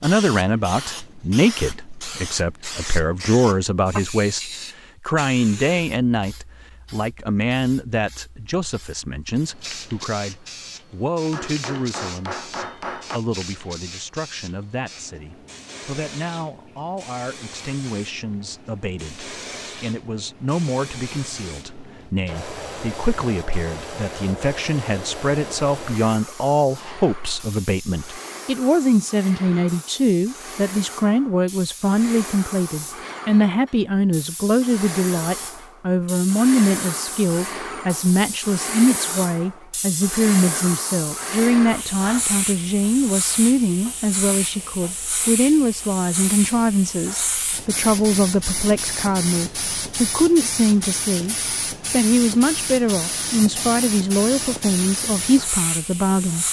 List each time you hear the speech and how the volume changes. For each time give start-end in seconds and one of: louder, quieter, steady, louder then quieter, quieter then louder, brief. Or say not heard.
0.0-56.4 quieter then louder.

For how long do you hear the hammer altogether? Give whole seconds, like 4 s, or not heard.
2 s.